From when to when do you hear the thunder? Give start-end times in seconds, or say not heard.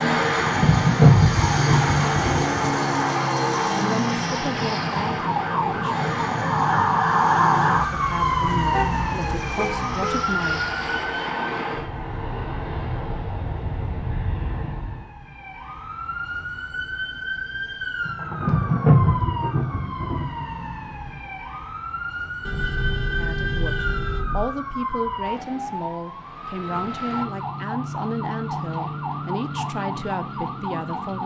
0.2-2.5, 18.1-20.5.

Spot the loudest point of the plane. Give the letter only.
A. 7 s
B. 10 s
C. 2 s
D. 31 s
C.